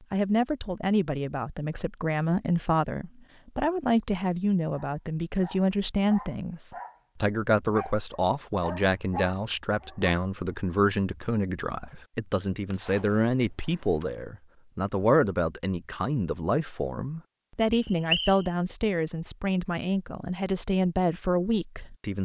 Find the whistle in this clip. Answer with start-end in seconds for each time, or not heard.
17.7-18.5.